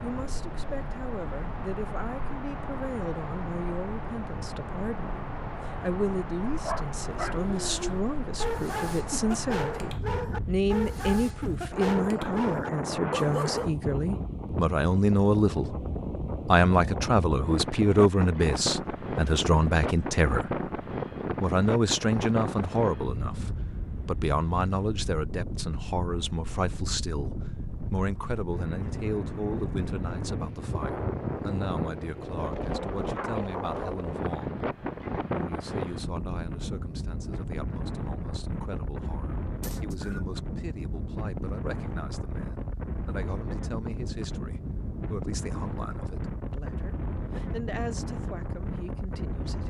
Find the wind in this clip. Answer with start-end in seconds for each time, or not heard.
0.0-49.6.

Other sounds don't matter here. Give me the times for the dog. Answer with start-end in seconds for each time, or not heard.
6.5-13.8.